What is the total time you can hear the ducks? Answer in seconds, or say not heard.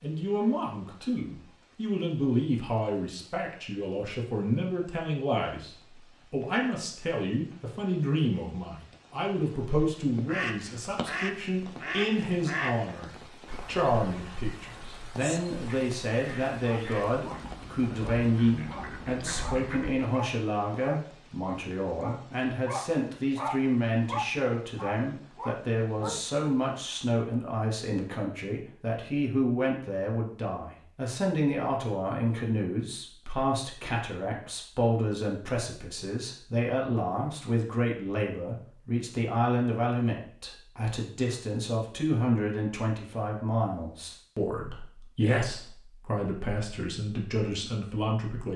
10 s.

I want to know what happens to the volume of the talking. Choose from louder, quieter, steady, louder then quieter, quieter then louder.
steady.